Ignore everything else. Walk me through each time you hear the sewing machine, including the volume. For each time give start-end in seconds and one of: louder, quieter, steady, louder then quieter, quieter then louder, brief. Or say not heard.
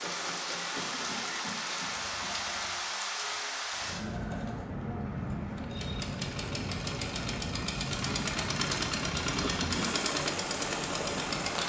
0.0-11.6 louder.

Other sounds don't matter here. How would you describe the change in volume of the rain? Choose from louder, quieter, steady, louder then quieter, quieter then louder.
steady.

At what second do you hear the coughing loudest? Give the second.
10 s.